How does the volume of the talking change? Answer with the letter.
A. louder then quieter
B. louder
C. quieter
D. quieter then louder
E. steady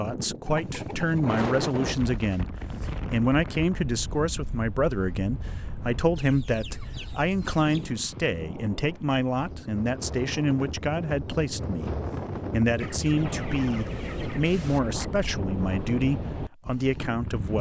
E.